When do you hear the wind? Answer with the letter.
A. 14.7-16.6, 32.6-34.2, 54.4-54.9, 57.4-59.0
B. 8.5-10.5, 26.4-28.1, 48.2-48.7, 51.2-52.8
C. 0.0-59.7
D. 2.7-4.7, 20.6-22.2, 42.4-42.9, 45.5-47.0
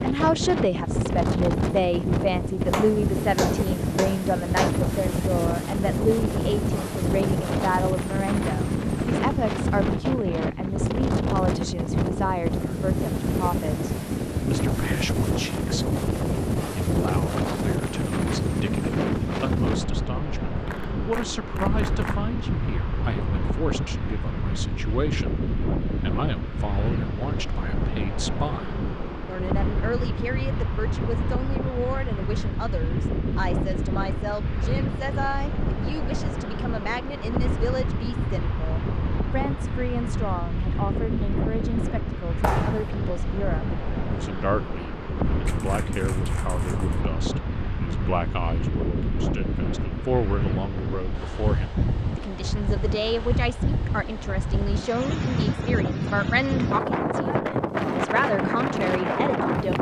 C.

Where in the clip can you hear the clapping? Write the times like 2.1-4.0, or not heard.
2.7-4.7, 20.6-22.2, 42.4-42.9, 45.5-47.0.